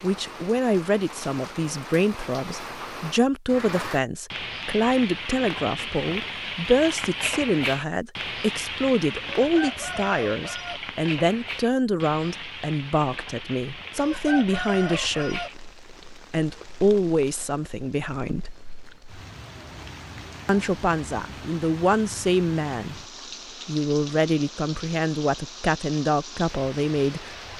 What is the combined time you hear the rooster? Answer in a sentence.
You can hear the rooster for 3 seconds altogether.